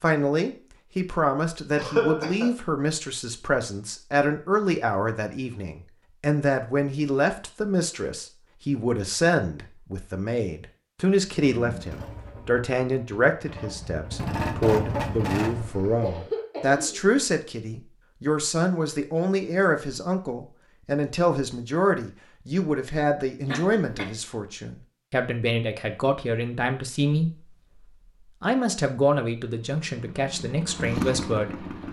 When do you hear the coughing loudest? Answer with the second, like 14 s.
2 s.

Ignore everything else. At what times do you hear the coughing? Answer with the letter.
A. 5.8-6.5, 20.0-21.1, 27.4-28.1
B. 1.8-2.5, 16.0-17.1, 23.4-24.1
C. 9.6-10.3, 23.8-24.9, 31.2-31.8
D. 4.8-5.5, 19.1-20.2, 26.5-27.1
B.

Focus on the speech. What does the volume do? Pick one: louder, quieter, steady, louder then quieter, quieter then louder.
steady.